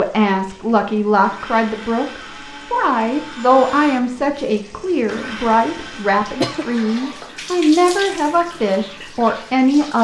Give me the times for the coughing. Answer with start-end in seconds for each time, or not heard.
6.0-6.7.